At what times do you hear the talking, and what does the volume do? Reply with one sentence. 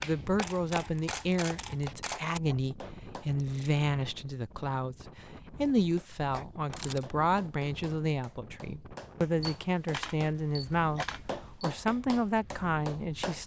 You can hear the talking from 0.0 to 13.4 s, at a steady volume.